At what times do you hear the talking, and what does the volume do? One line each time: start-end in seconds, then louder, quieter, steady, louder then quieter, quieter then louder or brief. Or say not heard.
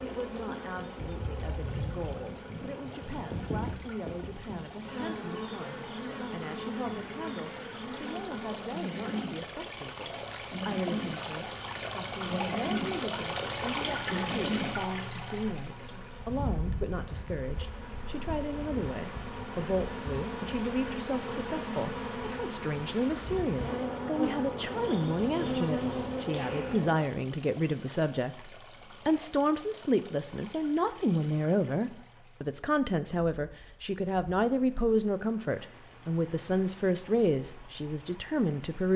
0.0-38.9 louder.